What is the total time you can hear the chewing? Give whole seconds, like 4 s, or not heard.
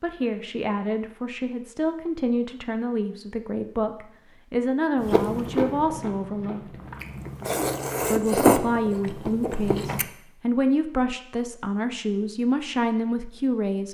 5 s.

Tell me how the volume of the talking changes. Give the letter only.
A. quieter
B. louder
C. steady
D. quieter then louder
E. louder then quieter
C.